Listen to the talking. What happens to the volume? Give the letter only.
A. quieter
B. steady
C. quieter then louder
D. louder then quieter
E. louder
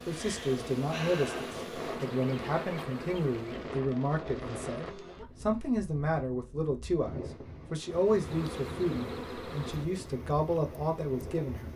B.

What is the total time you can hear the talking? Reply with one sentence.
The talking can be heard for 12 seconds in total.